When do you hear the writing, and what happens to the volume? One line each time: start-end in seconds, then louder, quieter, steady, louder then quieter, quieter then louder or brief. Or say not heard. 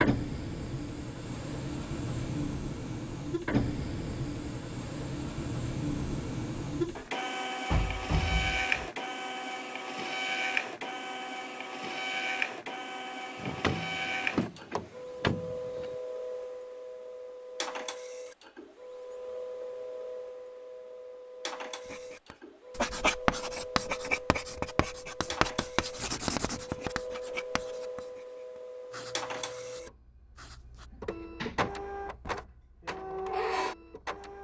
21.9-30.9 quieter.